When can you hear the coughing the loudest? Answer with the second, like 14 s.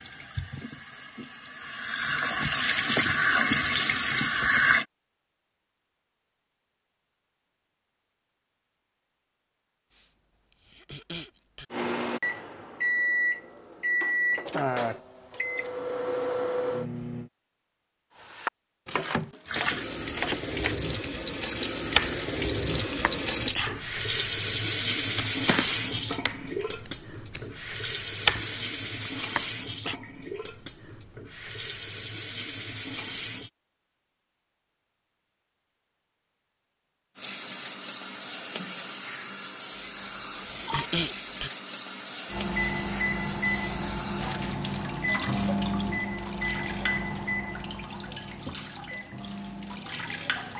41 s.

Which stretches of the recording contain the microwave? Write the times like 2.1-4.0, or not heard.
11.7-17.3, 42.2-50.5.